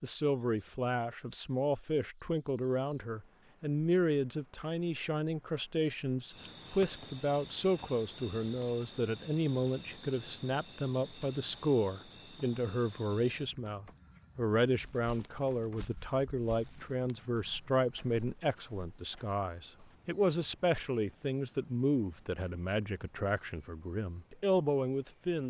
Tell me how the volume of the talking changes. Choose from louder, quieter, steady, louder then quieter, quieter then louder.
steady.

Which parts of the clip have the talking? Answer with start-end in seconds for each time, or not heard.
0.0-25.4.